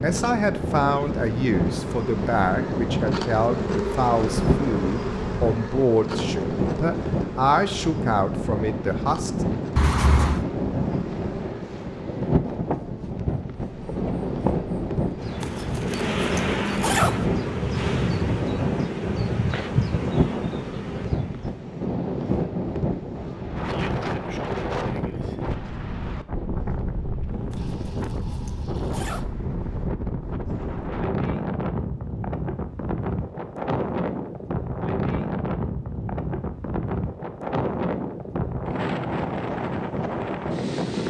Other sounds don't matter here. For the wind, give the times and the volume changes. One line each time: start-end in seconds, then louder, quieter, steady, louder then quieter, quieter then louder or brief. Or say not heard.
0.0-41.0 steady.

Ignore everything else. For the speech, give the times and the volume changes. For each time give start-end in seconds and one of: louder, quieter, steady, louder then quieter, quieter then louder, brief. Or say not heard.
0.0-9.3 steady.